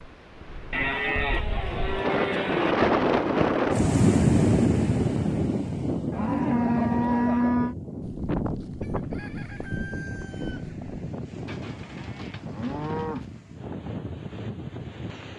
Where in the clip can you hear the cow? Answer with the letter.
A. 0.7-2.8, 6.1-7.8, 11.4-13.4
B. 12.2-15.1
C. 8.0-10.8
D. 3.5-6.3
A.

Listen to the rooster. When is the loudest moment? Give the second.
8 s.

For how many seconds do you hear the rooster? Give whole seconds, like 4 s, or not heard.
3 s.